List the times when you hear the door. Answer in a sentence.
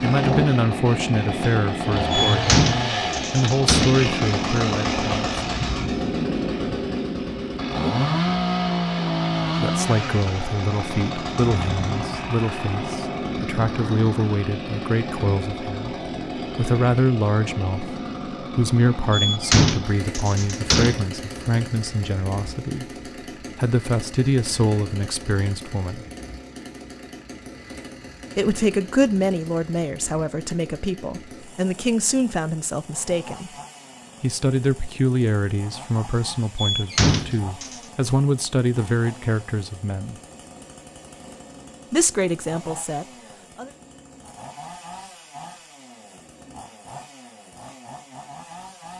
You can hear the door from 2.1 to 4.0 s, from 19.1 to 21.1 s and from 36.5 to 37.8 s.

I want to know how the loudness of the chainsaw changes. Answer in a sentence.
The loudness of the chainsaw goes down.